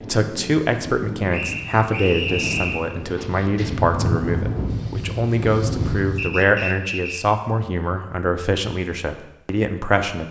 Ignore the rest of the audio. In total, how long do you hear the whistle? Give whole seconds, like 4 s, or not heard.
3 s.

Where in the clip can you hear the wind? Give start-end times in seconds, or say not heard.
0.0-6.4.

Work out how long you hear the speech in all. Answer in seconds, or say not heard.
10 s.